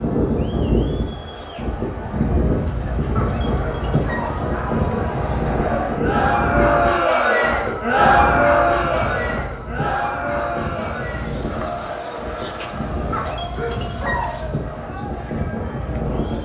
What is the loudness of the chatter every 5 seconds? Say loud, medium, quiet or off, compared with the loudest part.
quiet, loud, medium, quiet.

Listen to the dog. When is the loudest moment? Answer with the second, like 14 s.
14 s.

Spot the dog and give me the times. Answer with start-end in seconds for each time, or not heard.
3.1-4.5, 13.1-14.4.